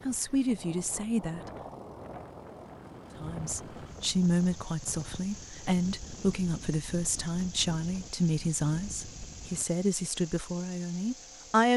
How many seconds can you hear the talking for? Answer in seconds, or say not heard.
10 s.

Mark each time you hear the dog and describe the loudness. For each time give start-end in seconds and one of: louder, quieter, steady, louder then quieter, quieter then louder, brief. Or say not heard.
not heard.